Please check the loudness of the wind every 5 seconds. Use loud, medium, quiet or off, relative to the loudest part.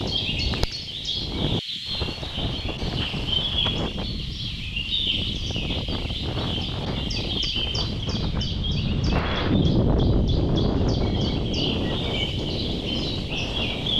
medium, loud, loud.